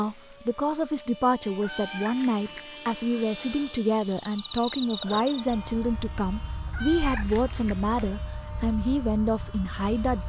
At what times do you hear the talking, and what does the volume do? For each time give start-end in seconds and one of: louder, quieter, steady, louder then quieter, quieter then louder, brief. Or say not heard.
0.0-10.2 steady.